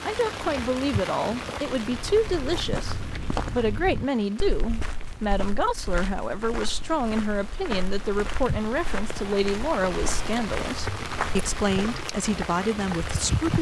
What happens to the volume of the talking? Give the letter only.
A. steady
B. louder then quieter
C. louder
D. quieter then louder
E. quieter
A.